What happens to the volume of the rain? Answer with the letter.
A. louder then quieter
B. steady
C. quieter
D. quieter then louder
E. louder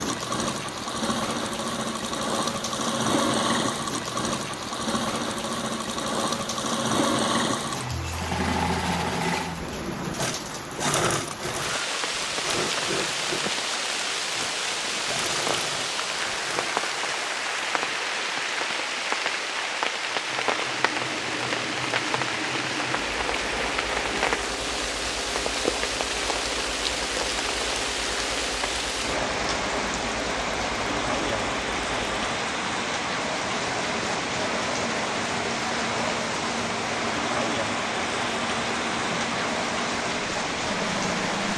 E.